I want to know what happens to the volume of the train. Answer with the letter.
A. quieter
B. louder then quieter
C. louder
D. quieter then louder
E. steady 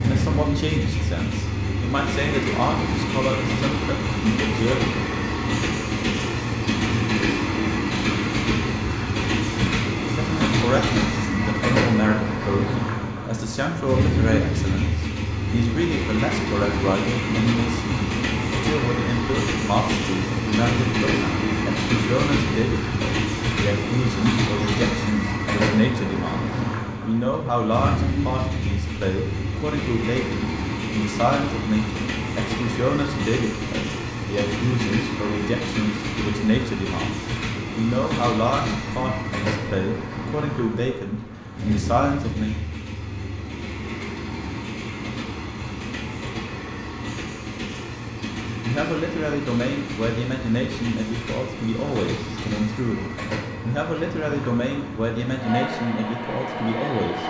A.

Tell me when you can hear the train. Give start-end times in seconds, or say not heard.
0.0-57.2.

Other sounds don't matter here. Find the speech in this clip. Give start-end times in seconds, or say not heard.
0.0-5.0, 9.4-42.5, 48.6-57.2.